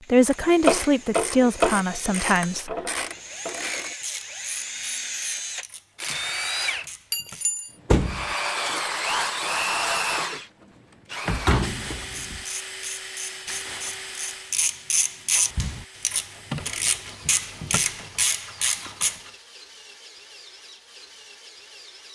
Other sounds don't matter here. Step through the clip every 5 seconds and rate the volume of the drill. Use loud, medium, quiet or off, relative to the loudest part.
medium, loud, medium, quiet, quiet.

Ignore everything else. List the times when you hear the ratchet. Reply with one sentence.
The ratchet can be heard from 0.3 to 7.5 s and from 12.3 to 19.2 s.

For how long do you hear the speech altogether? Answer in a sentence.
You can hear the speech for 3 seconds altogether.